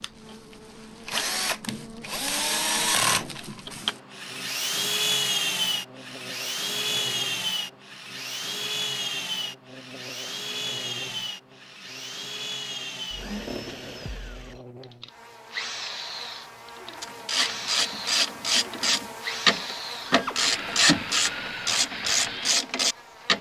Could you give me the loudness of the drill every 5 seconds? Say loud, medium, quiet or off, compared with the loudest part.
loud, loud, medium, medium, medium.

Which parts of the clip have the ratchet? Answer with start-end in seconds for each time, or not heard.
17.0-23.3.